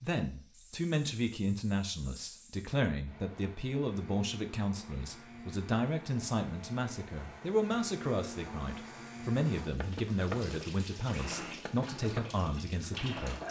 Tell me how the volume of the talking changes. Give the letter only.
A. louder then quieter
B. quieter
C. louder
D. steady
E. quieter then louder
D.